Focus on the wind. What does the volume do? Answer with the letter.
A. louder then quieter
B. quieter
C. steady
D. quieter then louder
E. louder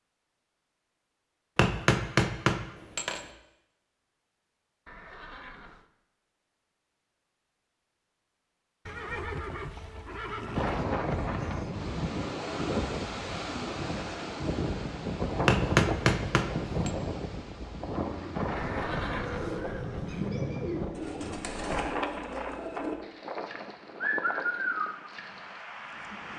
B.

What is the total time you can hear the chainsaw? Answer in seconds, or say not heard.
not heard.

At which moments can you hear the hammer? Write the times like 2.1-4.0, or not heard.
1.6-3.2, 15.4-16.9.